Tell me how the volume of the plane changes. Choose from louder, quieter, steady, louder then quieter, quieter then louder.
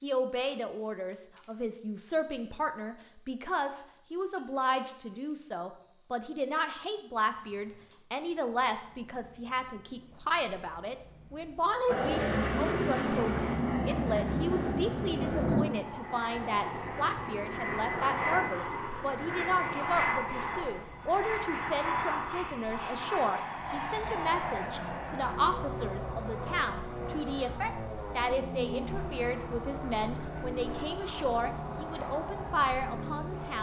quieter.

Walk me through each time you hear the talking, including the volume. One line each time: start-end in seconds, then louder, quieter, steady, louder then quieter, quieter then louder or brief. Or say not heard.
0.0-33.5 steady.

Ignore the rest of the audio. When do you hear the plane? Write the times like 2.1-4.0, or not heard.
11.8-33.5.